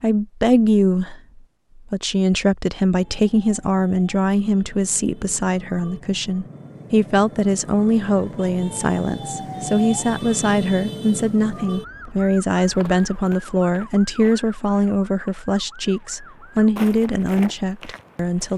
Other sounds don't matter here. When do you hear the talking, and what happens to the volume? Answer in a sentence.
You can hear the talking from 0.0 to 18.5 s, at a steady volume.